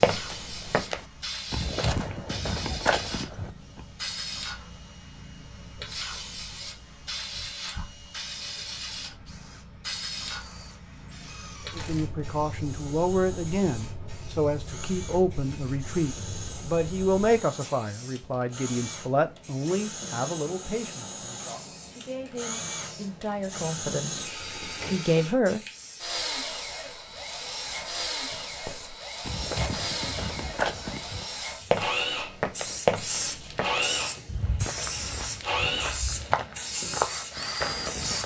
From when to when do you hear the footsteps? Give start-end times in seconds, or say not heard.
0.0-3.9, 28.6-38.2.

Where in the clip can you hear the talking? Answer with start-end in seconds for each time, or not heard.
11.8-25.6.